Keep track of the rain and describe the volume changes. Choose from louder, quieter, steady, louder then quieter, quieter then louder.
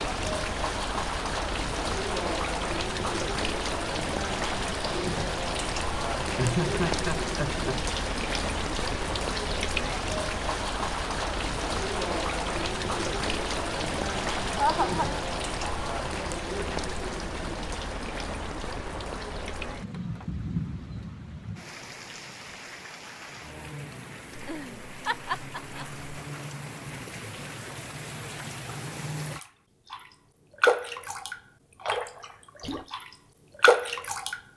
quieter then louder.